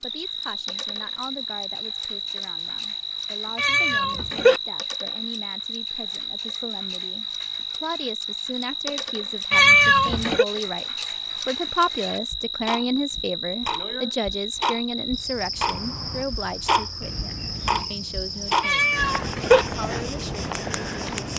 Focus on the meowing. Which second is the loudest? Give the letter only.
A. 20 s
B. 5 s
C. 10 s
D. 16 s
C.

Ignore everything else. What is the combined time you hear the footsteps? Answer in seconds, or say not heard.
not heard.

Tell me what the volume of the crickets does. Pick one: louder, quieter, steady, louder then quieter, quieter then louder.
steady.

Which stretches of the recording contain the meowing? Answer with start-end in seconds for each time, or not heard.
3.5-4.6, 9.5-10.4, 18.6-19.6.